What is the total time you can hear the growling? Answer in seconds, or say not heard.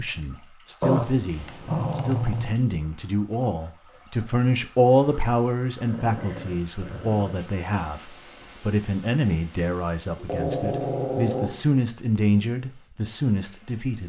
5 s.